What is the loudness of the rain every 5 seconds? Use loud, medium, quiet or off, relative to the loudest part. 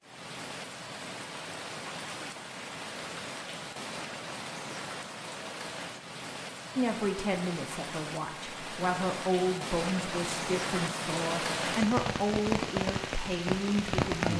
medium, medium, loud.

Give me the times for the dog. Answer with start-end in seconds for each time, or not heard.
not heard.